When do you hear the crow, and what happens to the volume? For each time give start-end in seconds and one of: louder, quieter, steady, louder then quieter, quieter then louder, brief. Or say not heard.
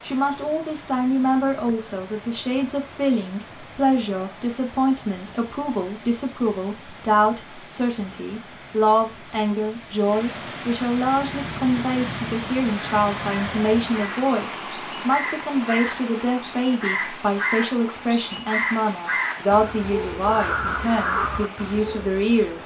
10.8-22.2 louder.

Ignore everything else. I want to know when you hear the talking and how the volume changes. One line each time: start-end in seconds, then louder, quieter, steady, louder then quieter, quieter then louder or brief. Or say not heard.
0.0-22.6 steady.